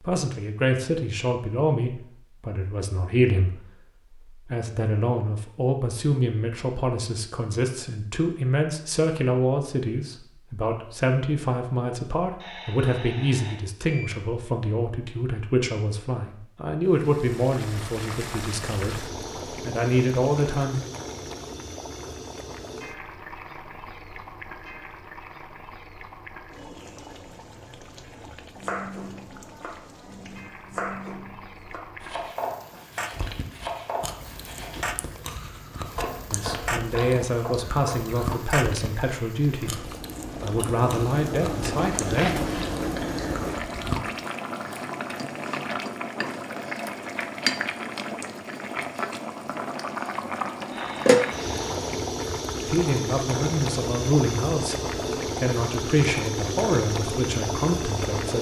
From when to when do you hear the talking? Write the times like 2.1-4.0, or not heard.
0.0-20.8, 36.3-42.3, 52.6-58.3.